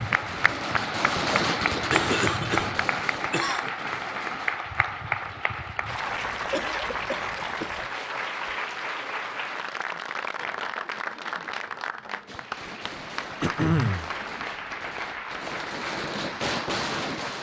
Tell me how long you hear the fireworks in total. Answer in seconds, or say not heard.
10 s.